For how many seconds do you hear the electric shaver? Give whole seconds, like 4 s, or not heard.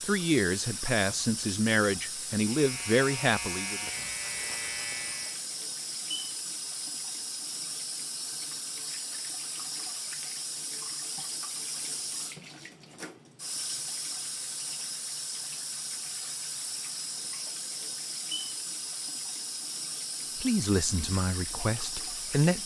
3 s.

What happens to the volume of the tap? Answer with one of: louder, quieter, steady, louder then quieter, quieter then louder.
steady.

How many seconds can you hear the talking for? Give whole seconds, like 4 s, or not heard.
6 s.